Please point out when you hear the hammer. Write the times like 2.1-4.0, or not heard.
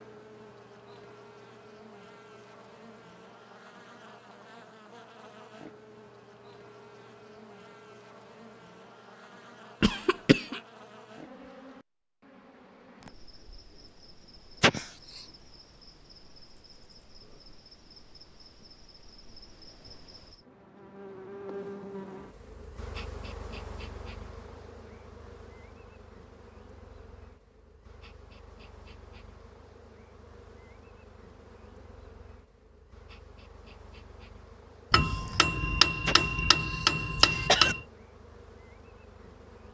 34.9-37.8.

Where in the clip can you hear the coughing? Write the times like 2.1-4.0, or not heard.
9.8-10.6, 14.6-15.2, 36.0-37.8.